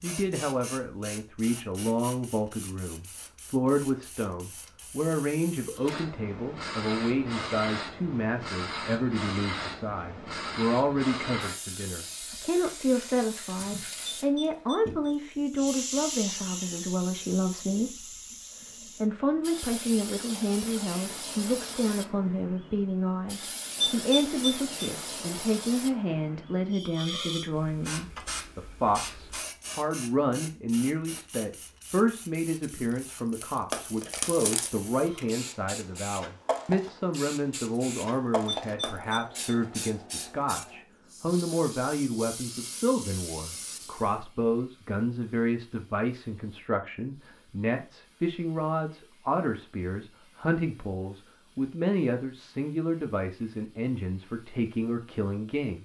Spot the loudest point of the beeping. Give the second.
24 s.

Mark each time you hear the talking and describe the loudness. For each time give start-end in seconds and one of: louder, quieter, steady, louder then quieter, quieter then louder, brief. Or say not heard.
0.0-55.7 steady.